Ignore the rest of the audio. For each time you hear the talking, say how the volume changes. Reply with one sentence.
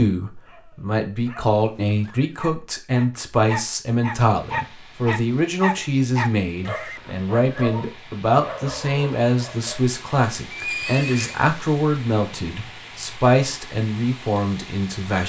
The talking can be heard from 0.0 to 15.2 s, at a steady volume.